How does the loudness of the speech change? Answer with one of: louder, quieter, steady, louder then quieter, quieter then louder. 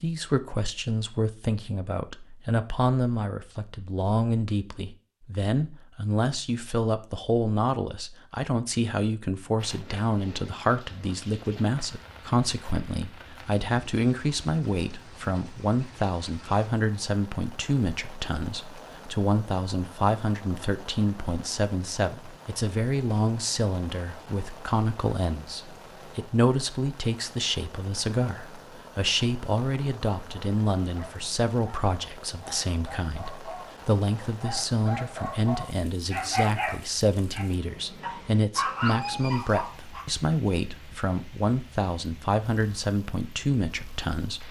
steady.